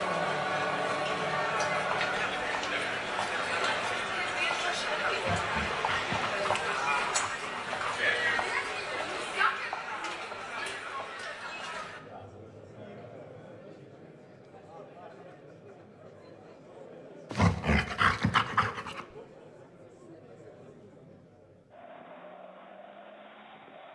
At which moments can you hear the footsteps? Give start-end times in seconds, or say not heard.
not heard.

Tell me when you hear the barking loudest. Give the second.
18 s.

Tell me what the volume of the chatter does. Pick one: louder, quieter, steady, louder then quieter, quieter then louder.
quieter.